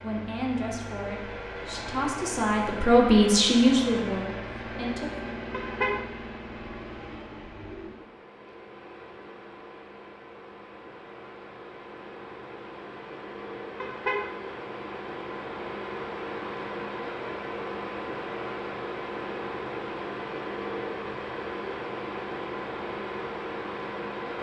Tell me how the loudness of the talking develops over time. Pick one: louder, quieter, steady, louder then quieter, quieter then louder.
louder then quieter.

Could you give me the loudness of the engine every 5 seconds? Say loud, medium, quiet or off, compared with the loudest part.
loud, medium, medium, loud, loud.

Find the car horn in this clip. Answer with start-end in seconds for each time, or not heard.
5.5-6.0, 13.8-14.2.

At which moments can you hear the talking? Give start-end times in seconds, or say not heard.
0.0-5.3.